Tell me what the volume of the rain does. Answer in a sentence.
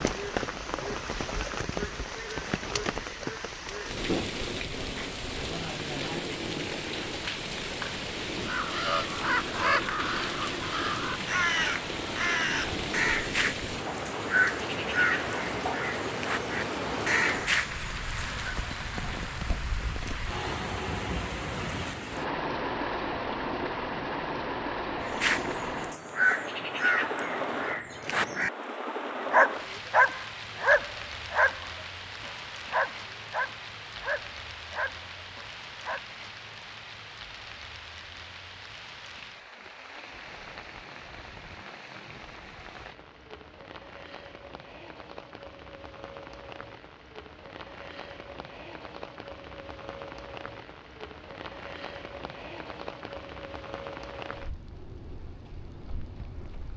The loudness of the rain goes down.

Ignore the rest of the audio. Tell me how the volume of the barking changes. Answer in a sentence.
The loudness of the barking goes down.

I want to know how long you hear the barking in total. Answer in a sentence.
The barking can be heard for 7 seconds in total.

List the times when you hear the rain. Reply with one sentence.
You can hear the rain from 0.0 to 56.7 s.